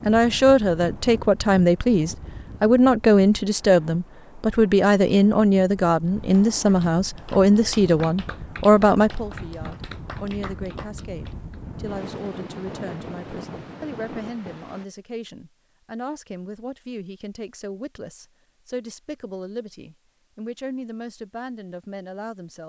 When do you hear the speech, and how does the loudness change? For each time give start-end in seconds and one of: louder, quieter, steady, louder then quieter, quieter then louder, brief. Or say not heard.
0.0-22.6 quieter.